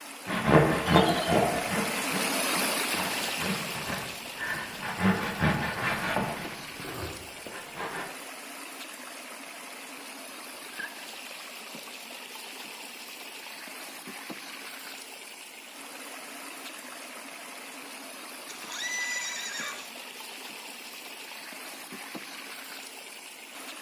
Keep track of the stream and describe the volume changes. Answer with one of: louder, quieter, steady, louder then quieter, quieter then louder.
quieter.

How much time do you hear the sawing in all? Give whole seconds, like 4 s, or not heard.
8 s.